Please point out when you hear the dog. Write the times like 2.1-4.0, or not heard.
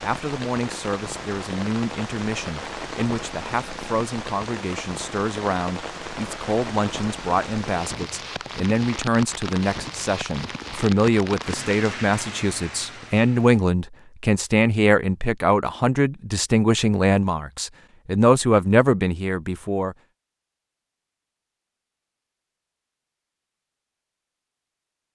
not heard.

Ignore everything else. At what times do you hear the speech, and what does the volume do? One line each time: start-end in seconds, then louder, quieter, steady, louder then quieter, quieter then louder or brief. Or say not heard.
0.0-19.9 louder.